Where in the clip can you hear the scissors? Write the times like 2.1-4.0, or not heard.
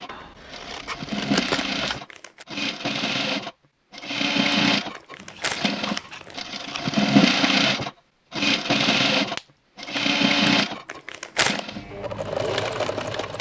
0.1-2.0, 5.2-7.0, 9.3-10.1.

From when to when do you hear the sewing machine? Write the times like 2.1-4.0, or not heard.
0.0-13.3.